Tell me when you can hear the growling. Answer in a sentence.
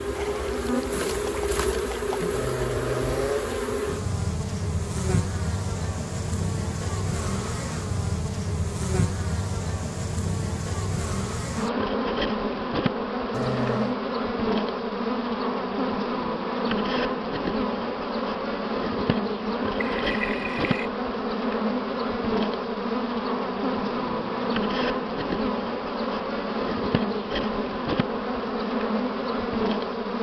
The growling can be heard from 2.3 to 3.5 s, from 13.3 to 13.9 s and from 23.9 to 24.4 s.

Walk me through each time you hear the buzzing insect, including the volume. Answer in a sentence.
You can hear the buzzing insect from 0.0 to 30.1 s, at a steady volume.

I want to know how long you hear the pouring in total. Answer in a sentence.
The pouring can be heard for 3 seconds in total.